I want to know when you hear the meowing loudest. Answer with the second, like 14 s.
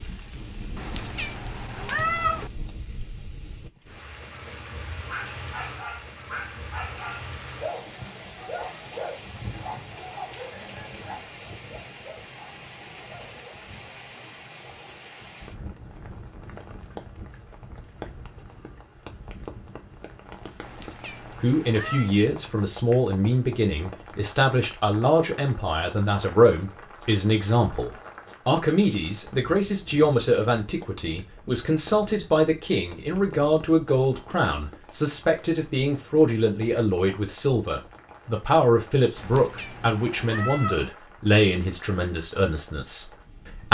2 s.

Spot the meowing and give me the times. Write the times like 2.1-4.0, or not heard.
0.8-2.5, 20.6-22.1, 39.1-40.9.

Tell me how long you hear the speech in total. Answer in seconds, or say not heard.
22 s.